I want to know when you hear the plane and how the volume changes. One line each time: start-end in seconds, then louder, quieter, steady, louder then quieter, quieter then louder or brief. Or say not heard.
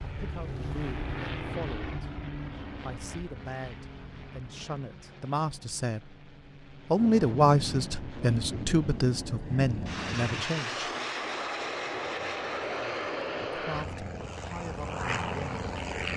0.0-16.1 quieter then louder.